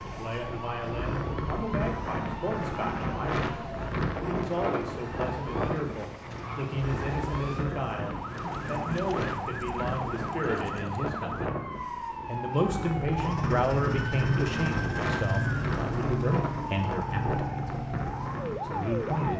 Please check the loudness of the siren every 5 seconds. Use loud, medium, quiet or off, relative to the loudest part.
medium, loud, loud, loud.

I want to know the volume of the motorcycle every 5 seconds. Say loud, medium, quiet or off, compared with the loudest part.
off, off, loud, loud.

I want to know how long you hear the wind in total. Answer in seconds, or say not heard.
19 s.